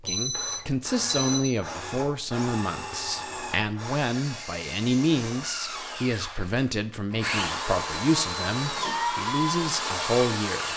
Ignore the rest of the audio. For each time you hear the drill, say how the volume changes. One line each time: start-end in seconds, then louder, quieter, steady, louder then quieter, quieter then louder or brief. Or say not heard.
0.0-10.7 louder.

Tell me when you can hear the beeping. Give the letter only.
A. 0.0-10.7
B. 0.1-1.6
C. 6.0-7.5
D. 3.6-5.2
B.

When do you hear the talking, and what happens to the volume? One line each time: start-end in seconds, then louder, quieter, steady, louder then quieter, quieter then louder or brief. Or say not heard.
0.0-10.7 steady.